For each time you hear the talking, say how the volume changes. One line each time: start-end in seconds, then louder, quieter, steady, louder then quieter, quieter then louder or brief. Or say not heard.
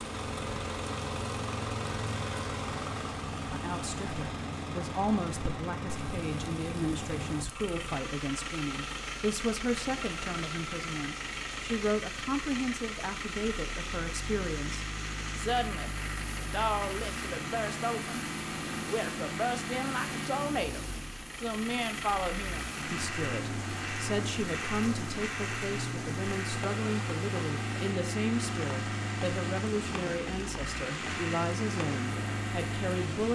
3.5-33.3 steady.